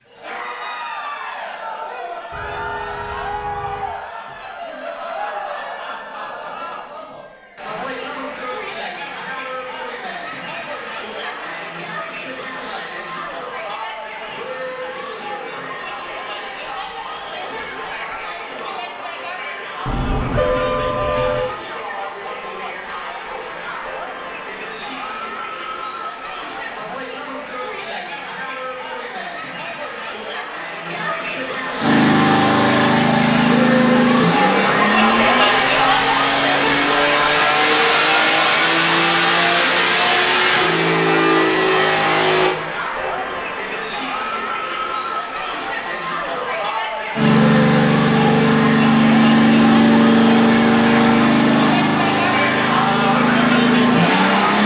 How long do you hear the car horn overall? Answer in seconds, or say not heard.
4 s.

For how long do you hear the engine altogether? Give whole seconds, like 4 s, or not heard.
18 s.